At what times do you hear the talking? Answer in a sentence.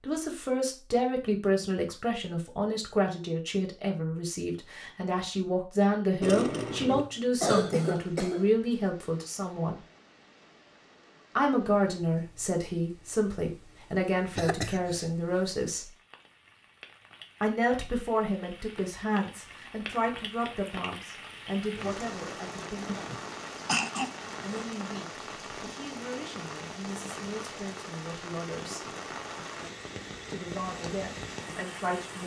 The talking can be heard from 0.0 to 9.8 s, from 11.3 to 15.9 s, from 17.4 to 23.1 s, from 24.4 to 28.9 s and from 30.3 to 32.2 s.